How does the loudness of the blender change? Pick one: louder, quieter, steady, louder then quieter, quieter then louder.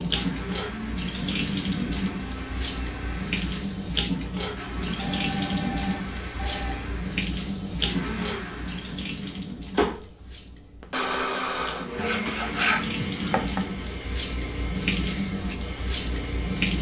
louder then quieter.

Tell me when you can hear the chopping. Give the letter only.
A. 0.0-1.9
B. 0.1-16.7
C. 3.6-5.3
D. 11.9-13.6
D.